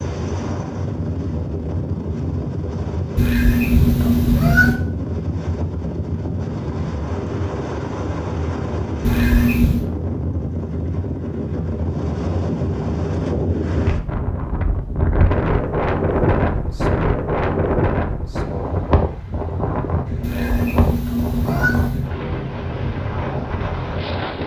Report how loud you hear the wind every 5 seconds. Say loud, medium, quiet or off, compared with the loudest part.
medium, medium, loud, loud, medium.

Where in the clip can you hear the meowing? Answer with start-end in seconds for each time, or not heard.
3.1-4.8, 9.0-9.8, 20.2-22.1.